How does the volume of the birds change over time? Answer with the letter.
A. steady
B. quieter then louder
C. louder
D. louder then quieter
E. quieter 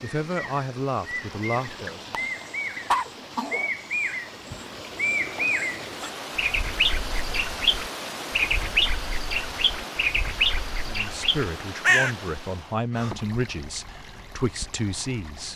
C.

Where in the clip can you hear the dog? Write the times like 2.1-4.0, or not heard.
1.9-3.7.